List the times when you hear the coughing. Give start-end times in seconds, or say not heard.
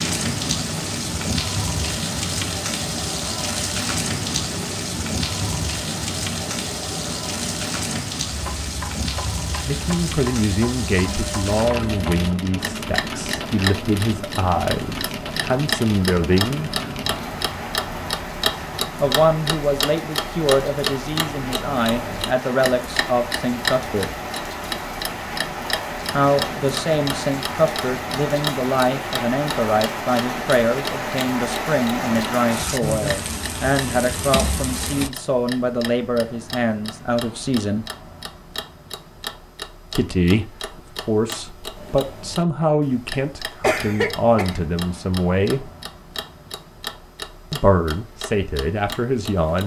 43.6-44.6.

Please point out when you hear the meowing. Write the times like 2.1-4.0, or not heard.
not heard.